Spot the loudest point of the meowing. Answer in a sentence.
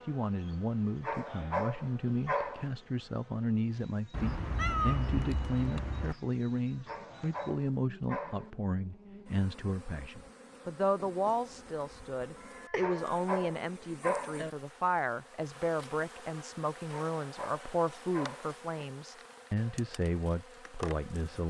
The volume of the meowing peaks at 5 seconds.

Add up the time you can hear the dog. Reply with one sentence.
The dog can be heard for 7 seconds in total.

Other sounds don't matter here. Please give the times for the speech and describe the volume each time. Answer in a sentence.
The speech can be heard from 0.1 to 21.4 s, at a steady volume.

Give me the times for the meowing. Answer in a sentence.
The meowing can be heard from 4.1 to 6.2 s and from 12.3 to 13.1 s.